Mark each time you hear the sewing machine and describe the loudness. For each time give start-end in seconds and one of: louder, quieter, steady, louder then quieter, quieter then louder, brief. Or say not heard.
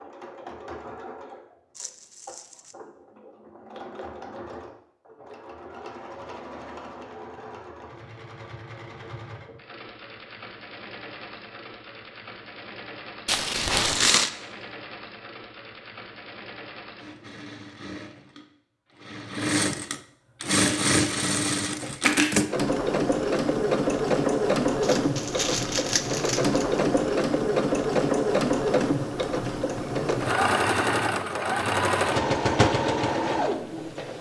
0.0-34.1 louder.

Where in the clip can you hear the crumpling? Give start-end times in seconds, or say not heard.
1.8-2.8, 13.2-14.3, 24.8-26.9.